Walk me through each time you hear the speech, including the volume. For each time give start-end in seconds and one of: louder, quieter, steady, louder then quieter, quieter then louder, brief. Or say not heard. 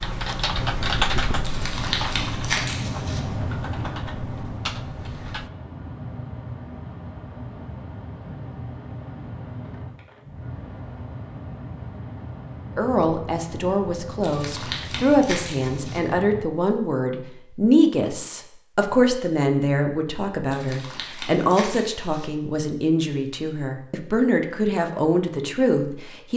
12.8-26.3 steady.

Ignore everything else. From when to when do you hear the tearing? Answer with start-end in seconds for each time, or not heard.
1.4-3.2, 14.2-16.0, 20.5-22.3.